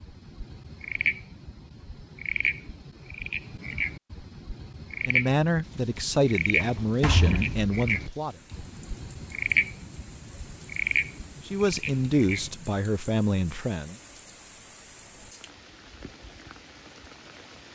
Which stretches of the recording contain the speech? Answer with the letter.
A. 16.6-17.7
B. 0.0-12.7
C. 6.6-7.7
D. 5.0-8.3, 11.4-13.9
D.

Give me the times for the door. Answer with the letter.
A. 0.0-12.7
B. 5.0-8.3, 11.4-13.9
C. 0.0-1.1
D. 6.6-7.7
D.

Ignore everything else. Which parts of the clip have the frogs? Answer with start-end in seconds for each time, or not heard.
0.0-12.7.